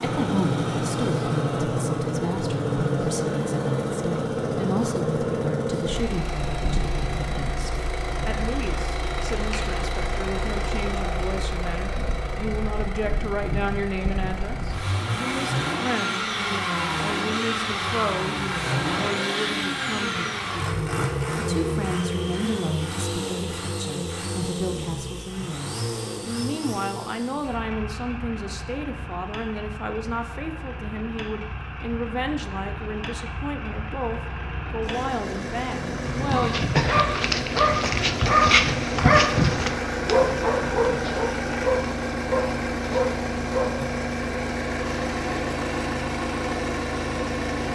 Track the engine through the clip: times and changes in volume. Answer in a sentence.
You can hear the engine from 0.0 to 47.6 s, getting quieter then louder.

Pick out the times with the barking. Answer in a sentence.
You can hear the barking from 36.2 to 43.8 s.